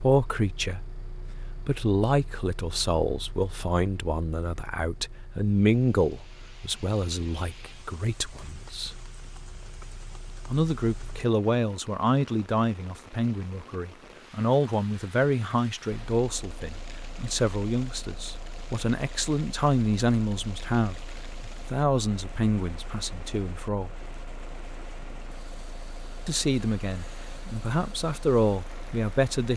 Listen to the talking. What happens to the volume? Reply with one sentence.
The loudness of the talking stays about the same.